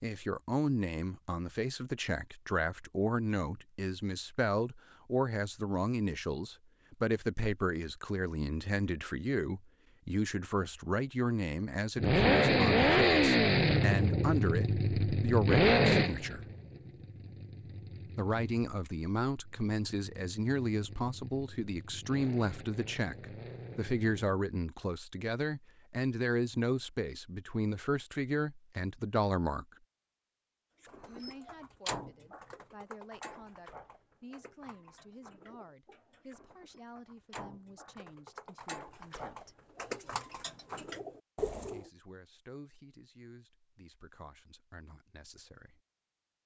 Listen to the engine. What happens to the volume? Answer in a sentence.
The loudness of the engine goes down, then up.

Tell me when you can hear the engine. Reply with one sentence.
The engine can be heard from 11.9 to 24.4 s.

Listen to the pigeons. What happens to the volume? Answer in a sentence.
The volume of the pigeons goes down, then up.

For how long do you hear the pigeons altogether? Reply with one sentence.
You can hear the pigeons for 11 seconds altogether.